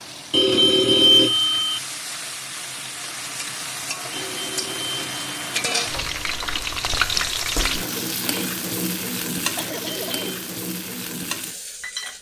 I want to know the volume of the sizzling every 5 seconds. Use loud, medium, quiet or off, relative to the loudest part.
medium, loud, medium.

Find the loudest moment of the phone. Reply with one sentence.
The volume of the phone peaks at 1 second.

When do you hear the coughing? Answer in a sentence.
You can hear the coughing from 9.6 to 10.3 s.